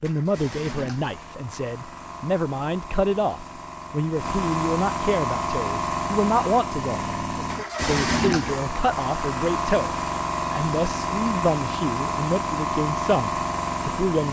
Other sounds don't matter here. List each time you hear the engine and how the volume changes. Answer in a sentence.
The engine can be heard from 0.0 to 14.2 s, getting louder.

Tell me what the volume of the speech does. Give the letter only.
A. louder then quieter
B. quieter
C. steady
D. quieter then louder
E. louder
C.